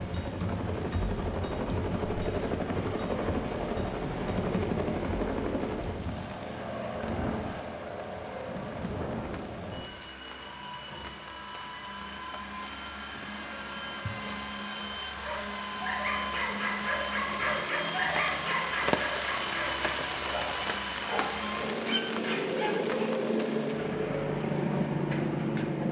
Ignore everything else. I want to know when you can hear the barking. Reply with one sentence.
The barking can be heard from 15.2 to 23.1 s.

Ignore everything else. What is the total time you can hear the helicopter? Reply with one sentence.
You can hear the helicopter for 26 seconds altogether.